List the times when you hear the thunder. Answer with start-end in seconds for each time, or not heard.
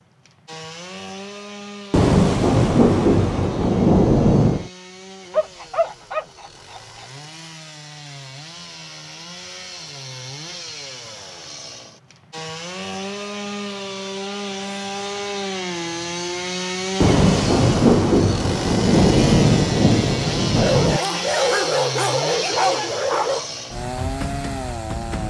1.9-4.7, 17.0-21.0.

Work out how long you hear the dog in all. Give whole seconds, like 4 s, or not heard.
5 s.